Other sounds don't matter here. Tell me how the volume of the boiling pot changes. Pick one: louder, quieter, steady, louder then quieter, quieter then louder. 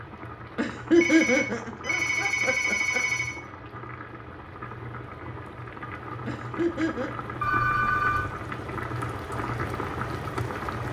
louder.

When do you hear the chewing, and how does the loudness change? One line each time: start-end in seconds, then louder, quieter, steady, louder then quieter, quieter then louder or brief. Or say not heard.
not heard.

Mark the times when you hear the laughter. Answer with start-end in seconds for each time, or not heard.
0.6-3.0, 6.2-7.2.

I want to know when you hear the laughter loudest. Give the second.
1 s.